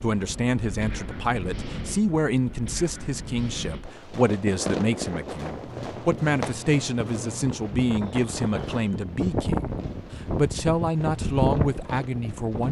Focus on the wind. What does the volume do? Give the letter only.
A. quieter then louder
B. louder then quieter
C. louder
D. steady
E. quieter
C.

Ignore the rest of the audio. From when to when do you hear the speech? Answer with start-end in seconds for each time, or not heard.
0.0-12.6.